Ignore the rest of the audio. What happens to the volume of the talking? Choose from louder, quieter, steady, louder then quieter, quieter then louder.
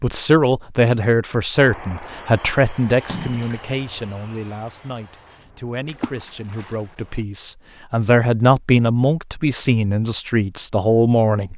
quieter then louder.